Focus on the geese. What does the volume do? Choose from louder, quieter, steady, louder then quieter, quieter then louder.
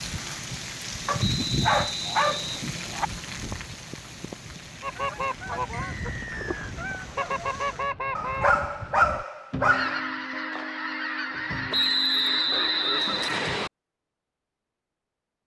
steady.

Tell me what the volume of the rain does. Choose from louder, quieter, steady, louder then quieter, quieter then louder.
quieter.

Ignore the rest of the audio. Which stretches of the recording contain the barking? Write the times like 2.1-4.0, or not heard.
1.1-3.0, 8.2-10.0.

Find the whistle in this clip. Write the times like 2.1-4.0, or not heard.
1.1-2.6, 5.7-6.8, 11.7-13.7.